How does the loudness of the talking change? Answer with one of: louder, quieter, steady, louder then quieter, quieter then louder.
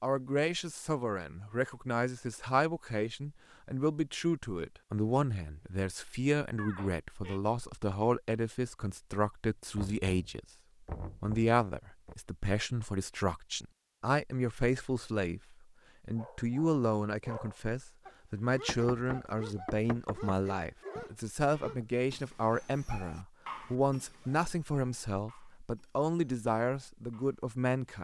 steady.